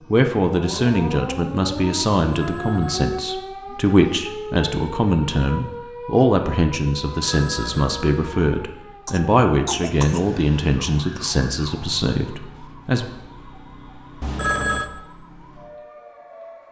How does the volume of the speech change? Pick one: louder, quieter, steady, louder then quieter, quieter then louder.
steady.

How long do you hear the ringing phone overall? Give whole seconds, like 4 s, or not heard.
3 s.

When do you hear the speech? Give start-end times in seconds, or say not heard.
0.1-13.1.